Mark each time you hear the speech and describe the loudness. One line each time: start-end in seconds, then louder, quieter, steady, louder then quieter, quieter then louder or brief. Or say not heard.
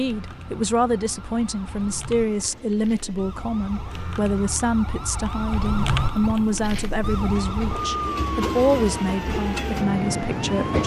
0.0-10.8 steady.